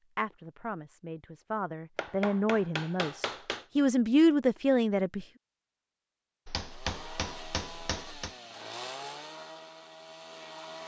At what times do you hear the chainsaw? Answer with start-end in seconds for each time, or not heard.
6.6-10.8.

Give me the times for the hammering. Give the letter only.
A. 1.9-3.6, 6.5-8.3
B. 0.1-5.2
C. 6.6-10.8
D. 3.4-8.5
A.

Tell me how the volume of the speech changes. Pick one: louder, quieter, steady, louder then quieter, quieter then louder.
louder.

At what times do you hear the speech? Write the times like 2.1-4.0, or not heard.
0.1-5.2.